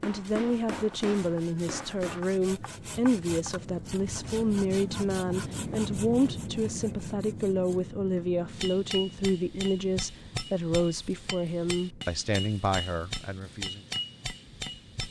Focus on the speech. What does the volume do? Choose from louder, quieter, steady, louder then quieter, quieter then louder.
steady.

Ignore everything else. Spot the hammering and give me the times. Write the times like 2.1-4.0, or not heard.
0.0-2.2, 8.5-15.0.